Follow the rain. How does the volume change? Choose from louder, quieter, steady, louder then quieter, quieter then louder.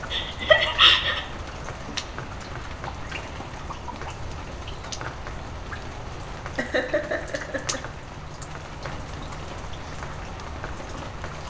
steady.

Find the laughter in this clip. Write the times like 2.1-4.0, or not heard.
0.1-1.2, 6.5-7.8.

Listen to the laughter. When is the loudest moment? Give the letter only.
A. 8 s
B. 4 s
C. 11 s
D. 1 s
D.